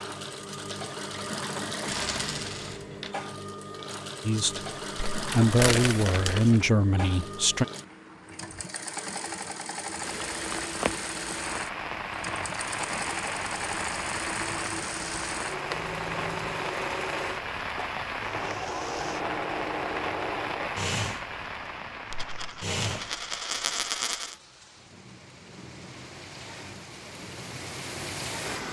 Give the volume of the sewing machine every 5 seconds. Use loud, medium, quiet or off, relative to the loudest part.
loud, loud, loud, loud, loud, quiet.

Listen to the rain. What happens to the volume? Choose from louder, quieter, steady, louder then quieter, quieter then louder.
quieter.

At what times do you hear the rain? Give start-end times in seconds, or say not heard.
10.0-28.6.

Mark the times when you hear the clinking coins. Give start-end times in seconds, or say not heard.
1.9-3.1, 15.7-16.6, 22.1-24.4.